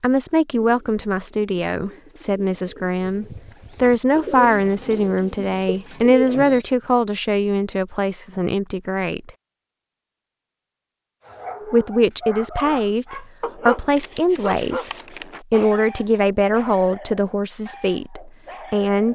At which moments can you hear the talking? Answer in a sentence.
You can hear the talking from 0.0 to 9.3 s, from 11.7 to 14.9 s and from 15.5 to 19.1 s.